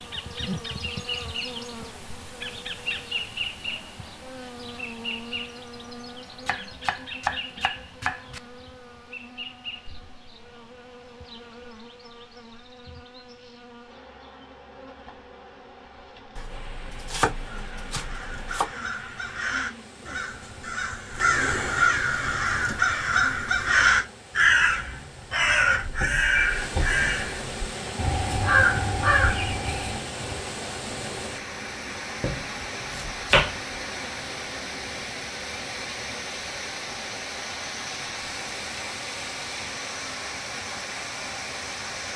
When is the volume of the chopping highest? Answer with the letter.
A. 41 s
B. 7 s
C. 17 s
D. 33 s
D.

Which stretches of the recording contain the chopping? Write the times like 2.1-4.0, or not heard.
6.5-8.4, 16.4-18.7, 32.2-33.5.